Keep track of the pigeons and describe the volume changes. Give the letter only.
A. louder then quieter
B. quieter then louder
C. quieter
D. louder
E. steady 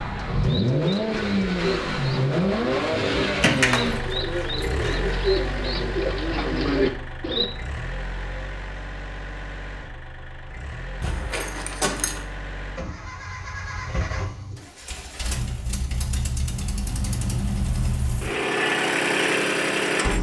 D.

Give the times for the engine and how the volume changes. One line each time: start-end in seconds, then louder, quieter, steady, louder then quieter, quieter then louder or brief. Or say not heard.
0.0-20.1 quieter then louder.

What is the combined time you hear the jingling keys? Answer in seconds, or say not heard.
3 s.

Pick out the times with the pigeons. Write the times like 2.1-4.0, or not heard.
0.2-7.5.